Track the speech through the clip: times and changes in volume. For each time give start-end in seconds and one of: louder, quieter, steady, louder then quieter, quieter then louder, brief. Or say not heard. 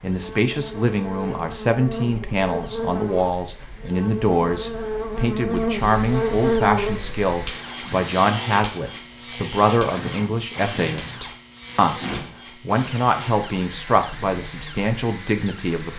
0.0-15.9 steady.